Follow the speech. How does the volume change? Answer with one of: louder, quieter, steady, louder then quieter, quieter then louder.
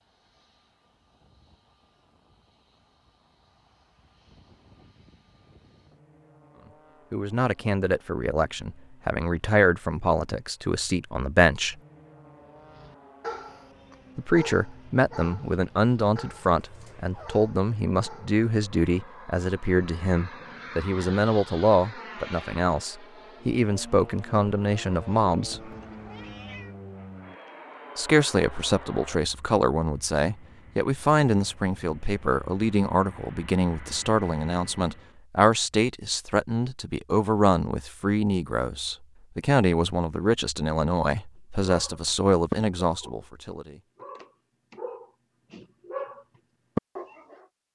steady.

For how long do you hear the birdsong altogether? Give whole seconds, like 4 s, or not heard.
not heard.